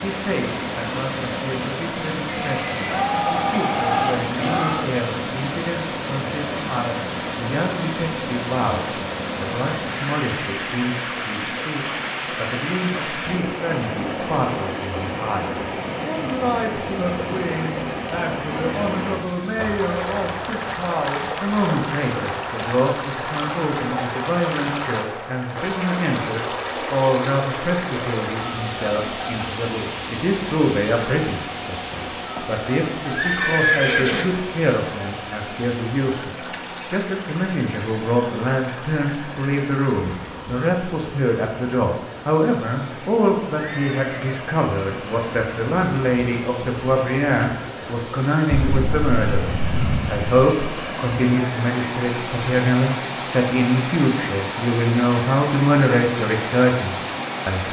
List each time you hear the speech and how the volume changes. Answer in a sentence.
You can hear the speech from 0.0 to 57.6 s, getting louder.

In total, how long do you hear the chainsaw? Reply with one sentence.
You can't hear the chainsaw here.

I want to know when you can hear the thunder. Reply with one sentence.
The thunder can be heard from 48.5 to 50.3 s.